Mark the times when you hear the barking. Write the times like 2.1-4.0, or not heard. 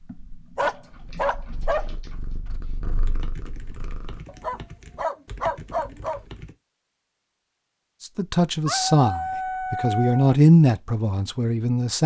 0.6-1.9, 4.2-6.2, 8.7-10.3.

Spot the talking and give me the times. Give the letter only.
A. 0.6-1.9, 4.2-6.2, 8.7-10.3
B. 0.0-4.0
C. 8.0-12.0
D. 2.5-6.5
C.